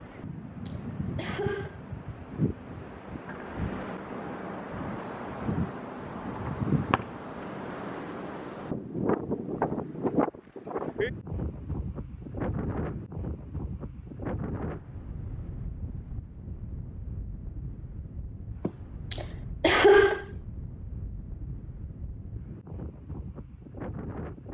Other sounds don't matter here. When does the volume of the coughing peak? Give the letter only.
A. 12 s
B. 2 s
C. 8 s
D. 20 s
D.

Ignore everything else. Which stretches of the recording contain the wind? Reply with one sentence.
You can hear the wind from 0.0 to 24.4 s.